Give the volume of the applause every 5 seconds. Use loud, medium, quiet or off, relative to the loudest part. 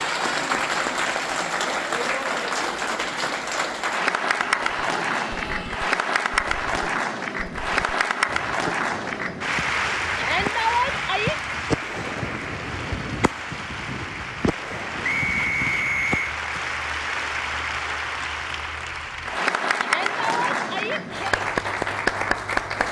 loud, loud, medium, loud, loud.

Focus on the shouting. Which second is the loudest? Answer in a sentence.
The loudest moment of the shouting is at 11 seconds.